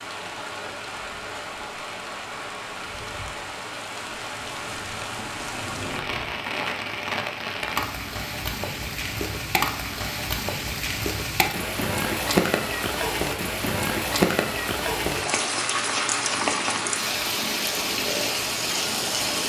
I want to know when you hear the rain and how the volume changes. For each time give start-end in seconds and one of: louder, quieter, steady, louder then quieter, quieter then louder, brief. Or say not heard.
0.0-19.4 louder.